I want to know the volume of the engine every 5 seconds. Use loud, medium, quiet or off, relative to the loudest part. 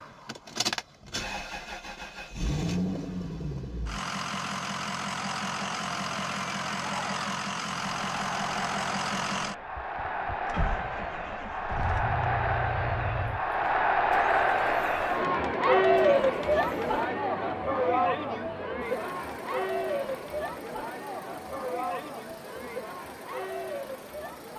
loud, loud, medium, quiet, quiet.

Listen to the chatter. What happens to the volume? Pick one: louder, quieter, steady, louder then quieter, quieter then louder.
louder then quieter.